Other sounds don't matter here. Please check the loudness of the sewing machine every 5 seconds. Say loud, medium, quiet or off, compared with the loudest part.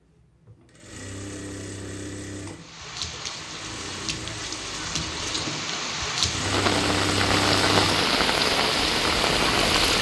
medium, loud.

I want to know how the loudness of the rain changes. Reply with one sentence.
The loudness of the rain goes up.